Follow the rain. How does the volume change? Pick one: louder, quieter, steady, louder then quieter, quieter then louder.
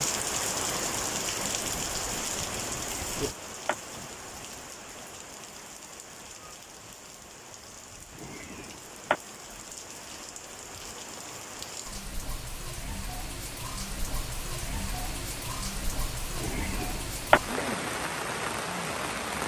quieter then louder.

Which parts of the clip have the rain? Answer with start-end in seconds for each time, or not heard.
0.0-19.4.